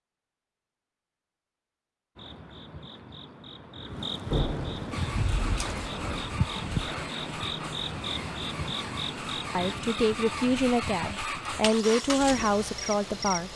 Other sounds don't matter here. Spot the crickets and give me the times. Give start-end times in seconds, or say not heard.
2.1-13.5.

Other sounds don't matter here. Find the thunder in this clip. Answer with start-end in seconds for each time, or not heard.
4.3-6.8.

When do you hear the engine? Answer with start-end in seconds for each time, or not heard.
4.9-13.5.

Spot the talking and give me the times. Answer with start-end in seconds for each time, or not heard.
9.6-13.5.